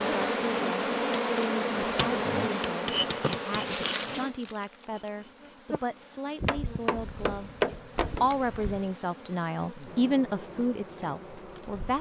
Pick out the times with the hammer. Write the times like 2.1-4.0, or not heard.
1.9-3.5, 6.4-8.8.